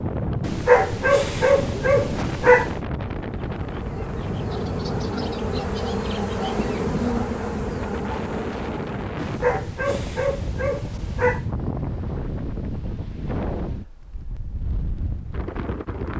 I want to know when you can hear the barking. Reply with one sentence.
You can hear the barking from 0.4 to 2.7 s and from 9.2 to 11.4 s.